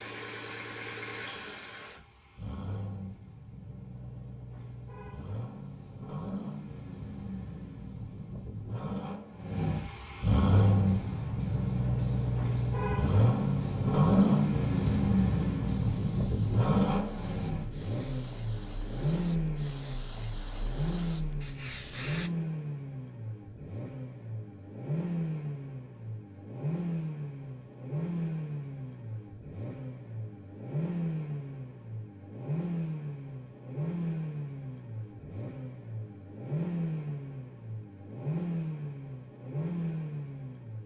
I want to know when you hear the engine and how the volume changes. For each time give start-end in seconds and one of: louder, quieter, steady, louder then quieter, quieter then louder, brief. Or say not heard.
0.0-40.8 louder then quieter.